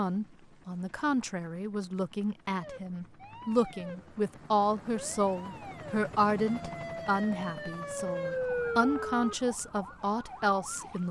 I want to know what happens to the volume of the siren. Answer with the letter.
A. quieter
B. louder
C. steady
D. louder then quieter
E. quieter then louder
D.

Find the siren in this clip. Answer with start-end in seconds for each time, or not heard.
2.6-11.0.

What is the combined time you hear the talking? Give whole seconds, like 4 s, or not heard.
11 s.